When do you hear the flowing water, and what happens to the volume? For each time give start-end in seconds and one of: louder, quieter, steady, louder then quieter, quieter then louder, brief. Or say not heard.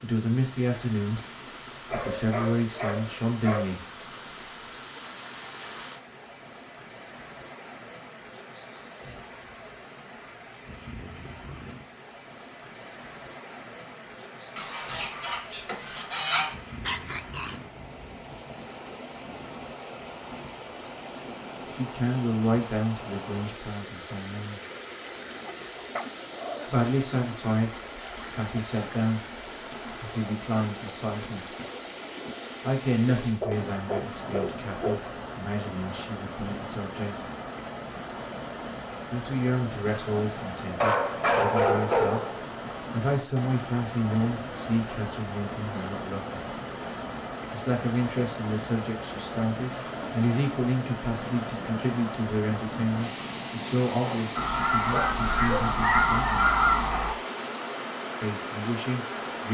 0.0-59.4 louder.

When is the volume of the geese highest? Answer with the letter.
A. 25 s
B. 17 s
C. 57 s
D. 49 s
C.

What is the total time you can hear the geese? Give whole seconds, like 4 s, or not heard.
5 s.